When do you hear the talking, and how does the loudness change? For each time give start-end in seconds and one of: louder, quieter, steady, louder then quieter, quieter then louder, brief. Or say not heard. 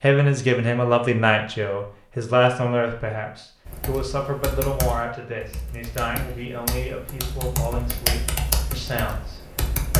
0.0-9.9 quieter.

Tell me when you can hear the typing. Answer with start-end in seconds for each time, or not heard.
3.6-9.9.